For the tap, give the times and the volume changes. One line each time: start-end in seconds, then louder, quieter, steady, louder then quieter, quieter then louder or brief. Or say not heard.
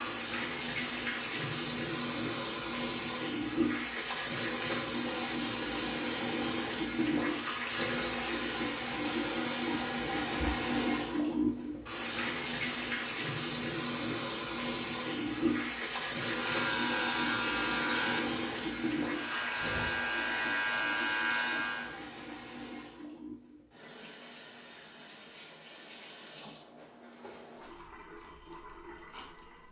0.0-29.6 quieter.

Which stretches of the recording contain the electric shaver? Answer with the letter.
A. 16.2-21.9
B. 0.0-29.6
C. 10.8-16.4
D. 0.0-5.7
A.